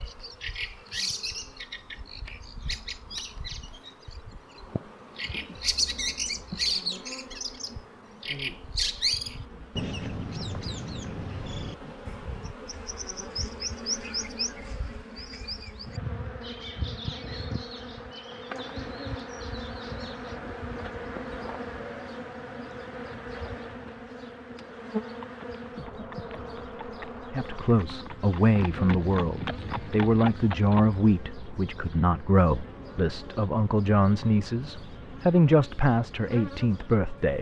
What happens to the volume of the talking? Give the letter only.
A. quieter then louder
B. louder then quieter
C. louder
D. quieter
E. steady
E.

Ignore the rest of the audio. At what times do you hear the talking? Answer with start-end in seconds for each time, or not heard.
27.3-37.3.